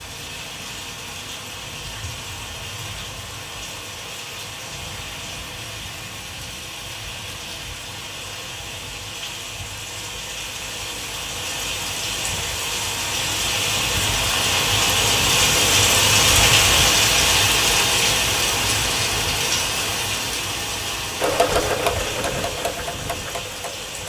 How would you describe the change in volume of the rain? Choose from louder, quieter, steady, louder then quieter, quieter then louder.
louder then quieter.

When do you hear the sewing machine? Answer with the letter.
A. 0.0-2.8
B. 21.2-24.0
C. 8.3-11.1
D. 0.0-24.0
B.